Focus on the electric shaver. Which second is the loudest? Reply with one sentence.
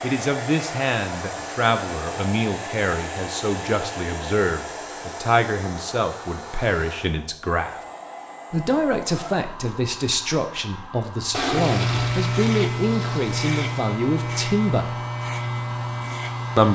The volume of the electric shaver peaks at 12 seconds.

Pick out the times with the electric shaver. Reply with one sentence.
You can hear the electric shaver from 11.4 to 16.7 s.